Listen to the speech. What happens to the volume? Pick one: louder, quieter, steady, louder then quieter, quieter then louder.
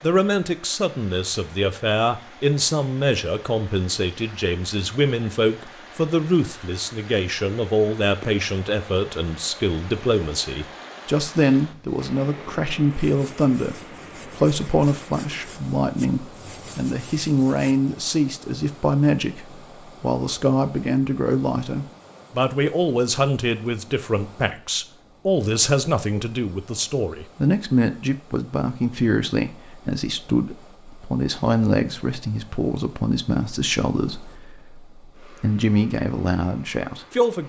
steady.